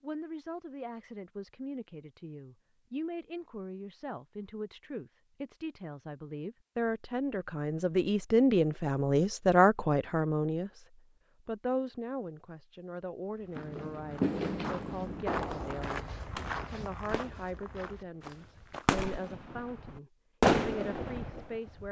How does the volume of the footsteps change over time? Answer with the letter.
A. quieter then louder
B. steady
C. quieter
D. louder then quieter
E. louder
D.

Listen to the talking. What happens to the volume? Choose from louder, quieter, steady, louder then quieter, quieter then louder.
louder then quieter.